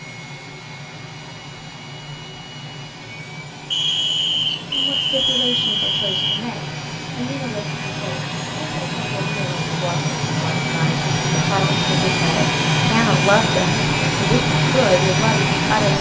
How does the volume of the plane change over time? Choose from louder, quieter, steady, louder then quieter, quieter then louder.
louder.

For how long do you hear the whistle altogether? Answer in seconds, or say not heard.
3 s.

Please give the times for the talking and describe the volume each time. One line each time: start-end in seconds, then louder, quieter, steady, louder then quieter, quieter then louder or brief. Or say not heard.
4.7-15.9 louder.